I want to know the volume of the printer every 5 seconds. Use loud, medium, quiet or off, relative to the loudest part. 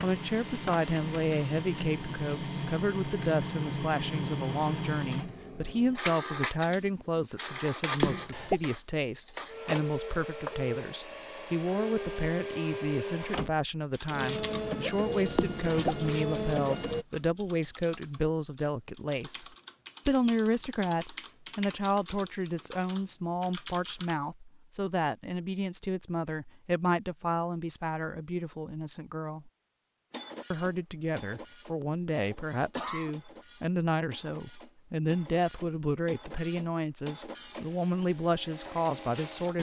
loud, loud, loud, loud, off, off, medium, medium.